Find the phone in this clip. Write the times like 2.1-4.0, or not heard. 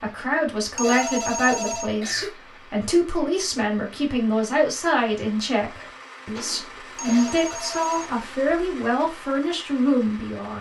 0.6-2.0, 6.8-8.8.